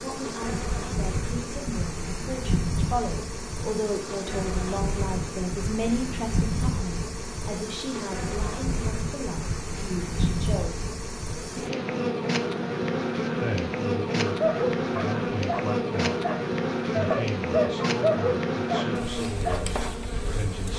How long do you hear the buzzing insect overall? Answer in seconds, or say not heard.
21 s.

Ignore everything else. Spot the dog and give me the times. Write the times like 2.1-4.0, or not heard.
14.4-19.6.